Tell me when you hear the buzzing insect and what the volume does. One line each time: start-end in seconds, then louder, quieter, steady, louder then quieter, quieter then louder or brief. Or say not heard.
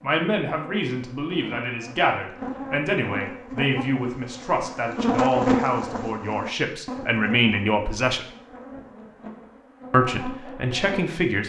0.0-11.2 louder then quieter.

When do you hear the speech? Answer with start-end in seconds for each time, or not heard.
0.0-8.2, 9.9-11.4.